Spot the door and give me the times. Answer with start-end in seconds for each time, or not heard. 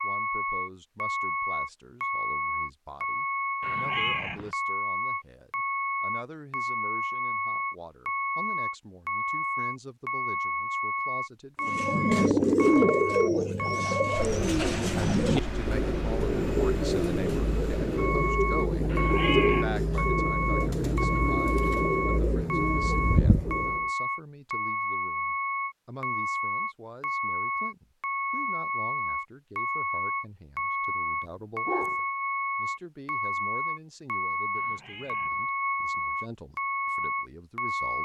not heard.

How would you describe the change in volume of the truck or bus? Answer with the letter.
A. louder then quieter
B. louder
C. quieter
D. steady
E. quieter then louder
D.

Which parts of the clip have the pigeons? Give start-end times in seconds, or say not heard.
11.6-23.9.